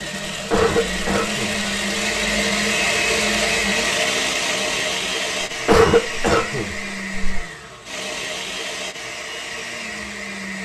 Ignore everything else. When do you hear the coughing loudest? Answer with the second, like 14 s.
6 s.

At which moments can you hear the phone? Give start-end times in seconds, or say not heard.
not heard.